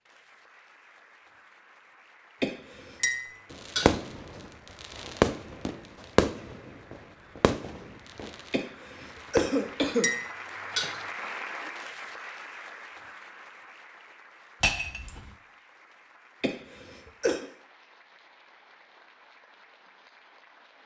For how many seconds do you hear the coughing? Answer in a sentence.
The coughing can be heard for 3 seconds in total.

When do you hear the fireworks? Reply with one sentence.
The fireworks can be heard from 3.5 to 9.9 s.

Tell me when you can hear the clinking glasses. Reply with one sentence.
The clinking glasses can be heard from 3.0 to 4.0 s, from 10.0 to 11.0 s and from 14.6 to 15.3 s.